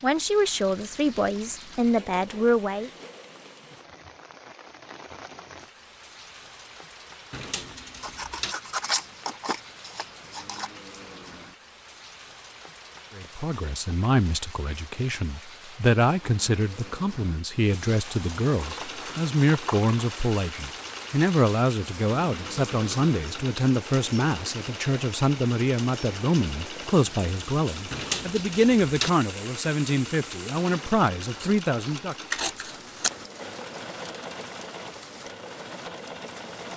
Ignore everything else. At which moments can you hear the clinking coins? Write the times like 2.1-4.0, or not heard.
7.3-8.6, 27.9-29.1.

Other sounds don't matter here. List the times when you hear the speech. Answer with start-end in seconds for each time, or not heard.
0.0-2.9, 13.2-32.1.